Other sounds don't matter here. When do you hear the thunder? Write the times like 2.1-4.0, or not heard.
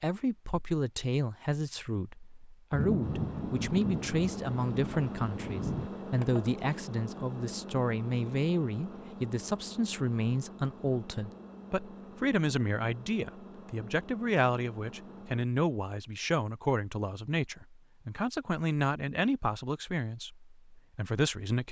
2.7-5.9.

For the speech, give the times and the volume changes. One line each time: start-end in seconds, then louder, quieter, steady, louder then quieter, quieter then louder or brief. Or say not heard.
0.0-21.6 steady.